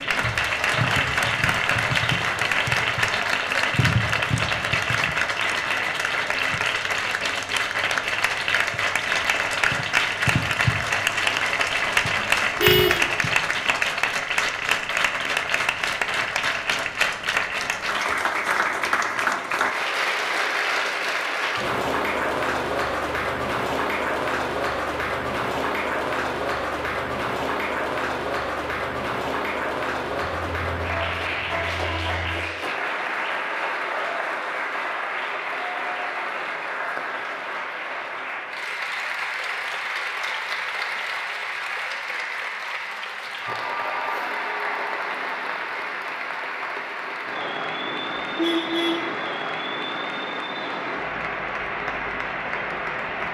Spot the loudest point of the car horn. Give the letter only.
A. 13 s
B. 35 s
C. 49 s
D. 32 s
A.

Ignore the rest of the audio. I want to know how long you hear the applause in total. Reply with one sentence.
You can hear the applause for 53 seconds altogether.